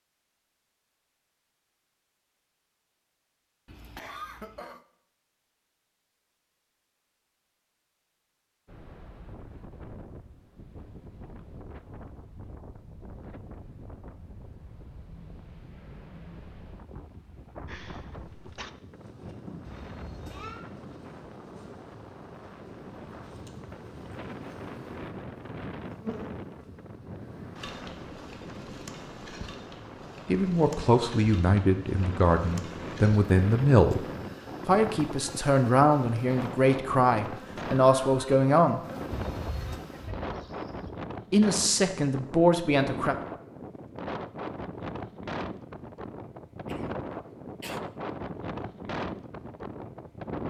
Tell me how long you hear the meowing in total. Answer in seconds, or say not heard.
2 s.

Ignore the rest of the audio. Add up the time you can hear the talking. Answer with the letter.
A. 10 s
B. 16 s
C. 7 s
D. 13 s
A.